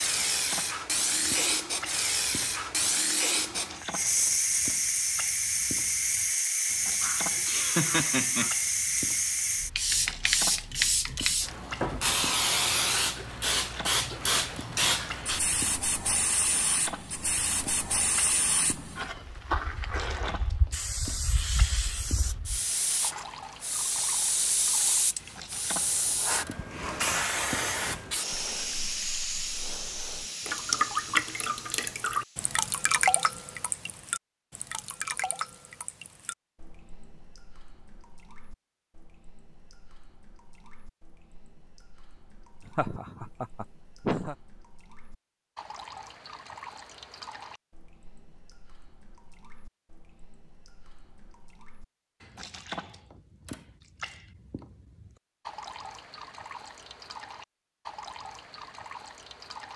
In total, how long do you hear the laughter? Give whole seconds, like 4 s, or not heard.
3 s.